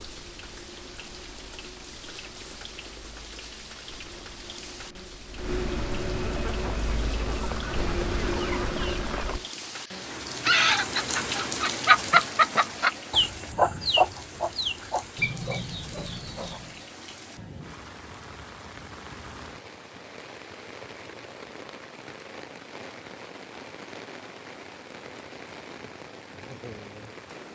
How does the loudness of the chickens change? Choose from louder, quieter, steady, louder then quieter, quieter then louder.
louder then quieter.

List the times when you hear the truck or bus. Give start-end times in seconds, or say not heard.
0.0-9.5.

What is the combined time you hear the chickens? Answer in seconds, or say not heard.
11 s.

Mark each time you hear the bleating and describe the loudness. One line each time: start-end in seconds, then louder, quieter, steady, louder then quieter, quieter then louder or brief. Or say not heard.
not heard.